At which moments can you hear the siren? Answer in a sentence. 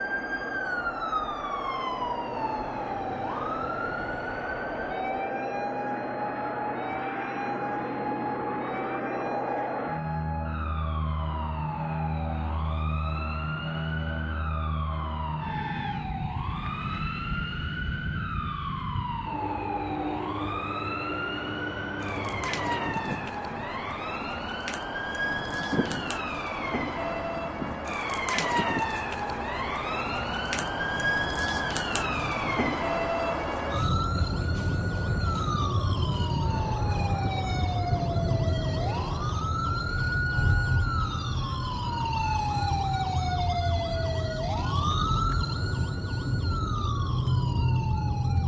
You can hear the siren from 0.0 to 48.4 s.